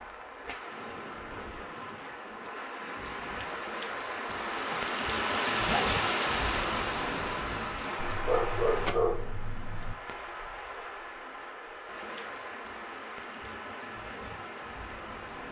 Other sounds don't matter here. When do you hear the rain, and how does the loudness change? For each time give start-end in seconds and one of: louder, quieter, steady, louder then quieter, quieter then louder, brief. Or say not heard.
0.0-15.4 louder then quieter.